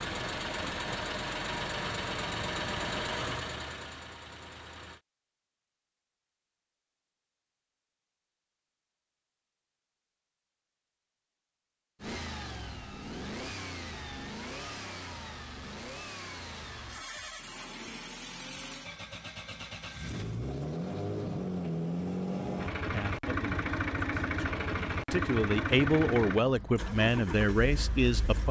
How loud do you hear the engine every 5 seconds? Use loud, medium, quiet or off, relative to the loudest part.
loud, off, medium, medium, loud, loud.